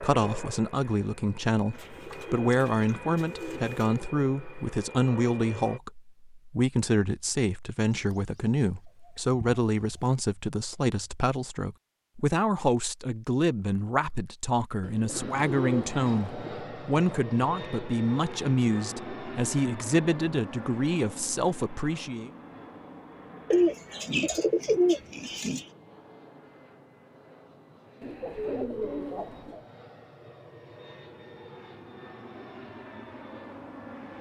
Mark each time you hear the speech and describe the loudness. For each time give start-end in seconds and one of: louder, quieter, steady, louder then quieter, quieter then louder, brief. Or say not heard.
0.0-22.3 steady.